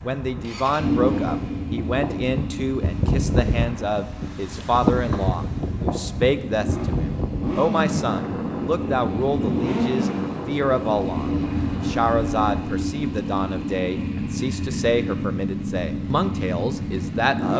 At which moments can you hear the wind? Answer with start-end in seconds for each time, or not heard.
0.0-12.7.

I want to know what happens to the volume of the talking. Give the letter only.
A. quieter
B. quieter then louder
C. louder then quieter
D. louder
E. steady
E.